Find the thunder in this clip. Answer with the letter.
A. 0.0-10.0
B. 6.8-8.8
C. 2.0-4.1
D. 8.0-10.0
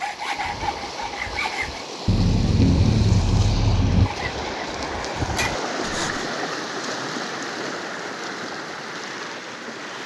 C.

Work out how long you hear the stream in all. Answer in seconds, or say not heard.
10 s.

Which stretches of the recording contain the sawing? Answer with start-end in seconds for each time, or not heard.
0.0-1.9, 3.9-6.3.